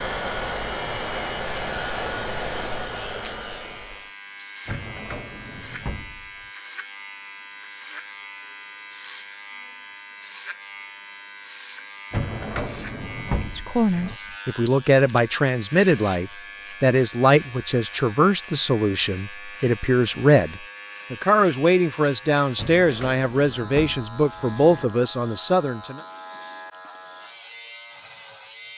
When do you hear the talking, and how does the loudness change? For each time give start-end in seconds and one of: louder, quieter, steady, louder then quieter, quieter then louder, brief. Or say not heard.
13.3-26.0 steady.